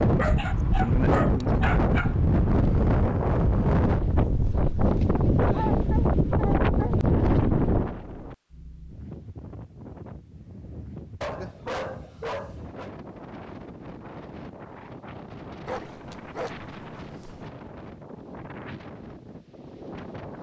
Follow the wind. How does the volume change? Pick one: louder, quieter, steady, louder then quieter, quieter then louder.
quieter.